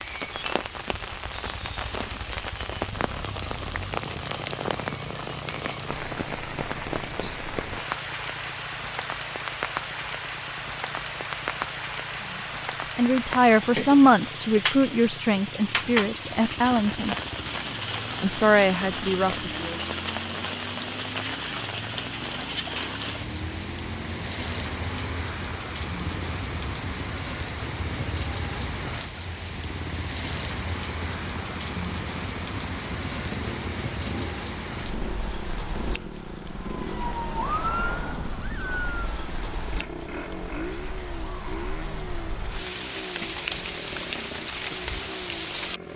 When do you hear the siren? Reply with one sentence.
You can hear the siren from 36.7 to 39.2 s.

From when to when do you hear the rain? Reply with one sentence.
The rain can be heard from 0.0 to 45.9 s.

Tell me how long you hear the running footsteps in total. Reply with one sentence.
You can't hear the running footsteps here.